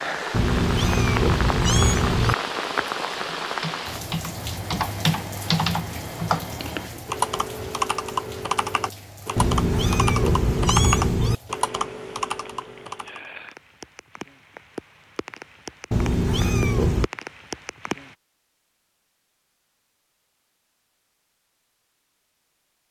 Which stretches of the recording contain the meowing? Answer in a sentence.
The meowing can be heard from 0.3 to 2.4 s, from 9.3 to 11.3 s and from 15.9 to 17.1 s.